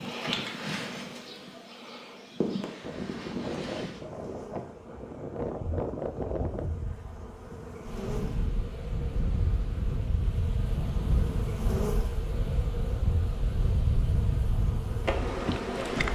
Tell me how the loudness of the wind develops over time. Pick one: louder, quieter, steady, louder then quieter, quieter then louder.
steady.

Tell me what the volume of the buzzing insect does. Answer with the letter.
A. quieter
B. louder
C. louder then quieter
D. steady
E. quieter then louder
E.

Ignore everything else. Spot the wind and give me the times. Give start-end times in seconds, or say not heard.
2.8-16.1.